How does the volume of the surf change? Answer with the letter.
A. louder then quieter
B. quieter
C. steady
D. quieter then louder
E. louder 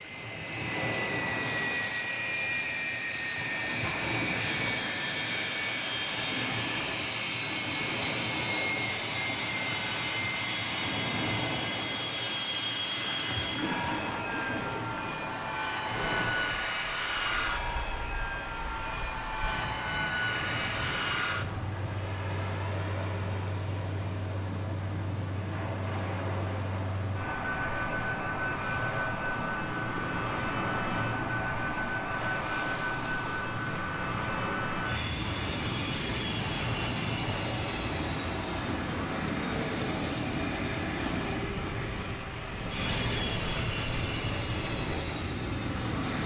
C.